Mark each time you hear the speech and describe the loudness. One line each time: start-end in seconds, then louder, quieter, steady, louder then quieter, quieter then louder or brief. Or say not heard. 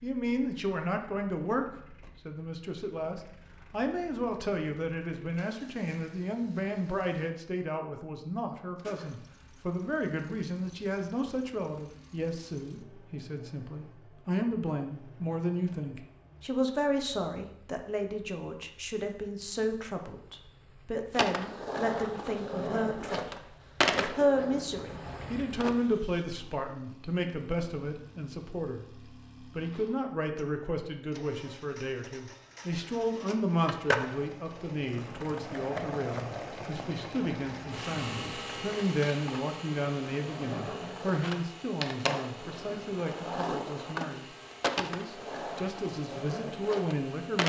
0.0-47.4 steady.